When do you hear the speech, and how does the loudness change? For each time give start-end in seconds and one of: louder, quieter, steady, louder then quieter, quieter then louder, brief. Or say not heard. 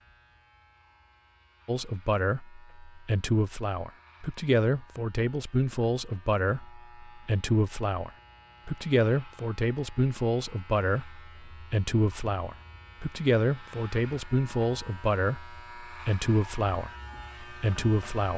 1.6-18.3 steady.